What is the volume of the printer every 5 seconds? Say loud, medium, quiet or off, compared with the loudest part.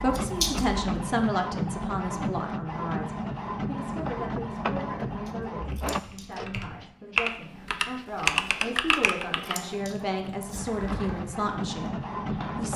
loud, medium, loud.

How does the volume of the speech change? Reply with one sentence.
The loudness of the speech goes down, then up.